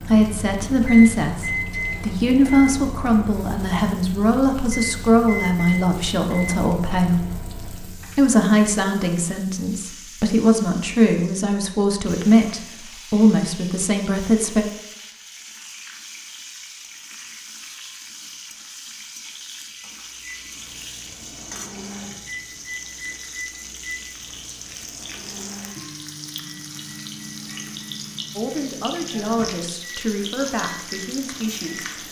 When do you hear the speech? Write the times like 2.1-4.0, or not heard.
0.1-14.7, 28.4-32.0.